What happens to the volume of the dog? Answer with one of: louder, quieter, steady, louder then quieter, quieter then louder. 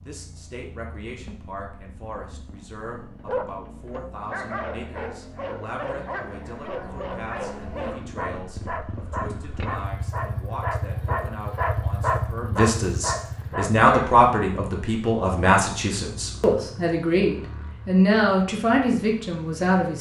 louder.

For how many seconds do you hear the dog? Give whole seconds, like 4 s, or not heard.
11 s.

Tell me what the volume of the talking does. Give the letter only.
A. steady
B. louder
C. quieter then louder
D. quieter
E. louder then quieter
B.